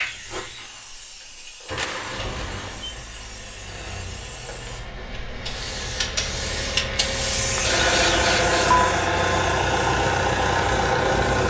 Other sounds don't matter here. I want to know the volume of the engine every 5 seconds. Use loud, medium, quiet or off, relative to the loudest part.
quiet, loud, loud.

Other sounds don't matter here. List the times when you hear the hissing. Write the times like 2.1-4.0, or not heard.
0.0-11.4.